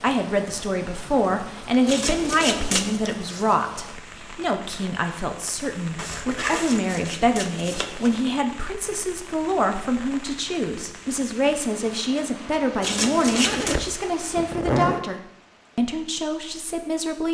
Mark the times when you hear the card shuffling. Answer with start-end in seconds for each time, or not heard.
1.9-3.0, 6.5-8.2, 12.8-13.8.